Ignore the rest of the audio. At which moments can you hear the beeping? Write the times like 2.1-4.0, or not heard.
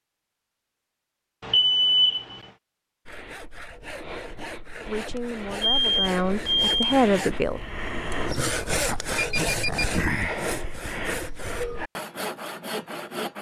1.4-2.4, 5.6-7.1, 9.1-9.9.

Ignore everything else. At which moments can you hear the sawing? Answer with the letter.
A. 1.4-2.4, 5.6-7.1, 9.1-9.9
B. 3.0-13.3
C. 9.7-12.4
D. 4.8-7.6
B.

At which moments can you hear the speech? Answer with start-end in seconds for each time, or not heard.
4.8-7.6.